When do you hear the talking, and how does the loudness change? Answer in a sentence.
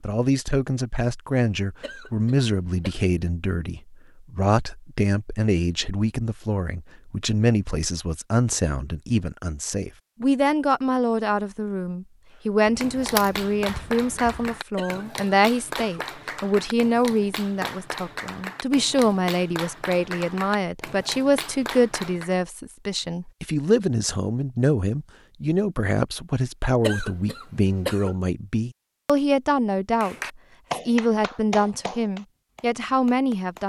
The talking can be heard from 0.0 to 30.1 s, at a steady volume; and briefly from 30.8 to 33.6 s.